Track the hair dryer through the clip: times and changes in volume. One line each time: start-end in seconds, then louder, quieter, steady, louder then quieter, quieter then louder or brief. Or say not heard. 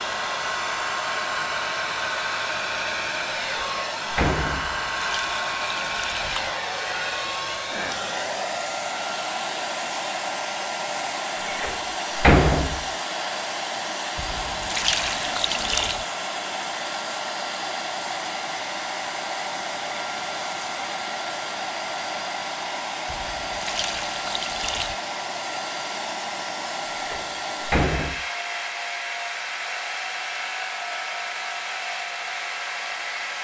0.0-33.3 steady.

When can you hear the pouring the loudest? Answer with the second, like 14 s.
15 s.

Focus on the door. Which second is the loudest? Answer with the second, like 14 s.
12 s.